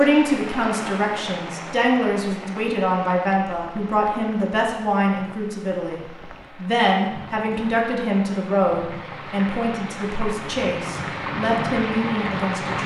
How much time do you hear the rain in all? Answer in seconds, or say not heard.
13 s.